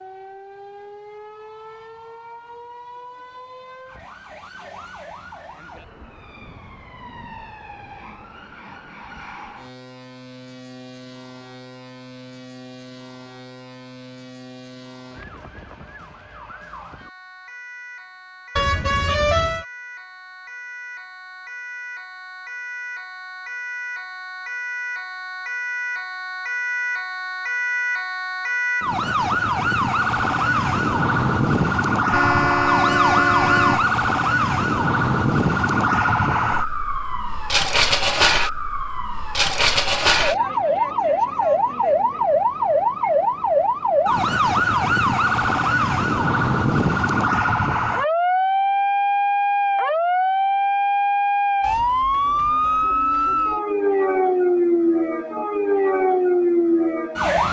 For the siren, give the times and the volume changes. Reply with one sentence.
You can hear the siren from 0.0 to 57.4 s, getting louder.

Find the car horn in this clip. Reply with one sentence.
The car horn can be heard from 18.6 to 19.6 s and from 32.1 to 33.9 s.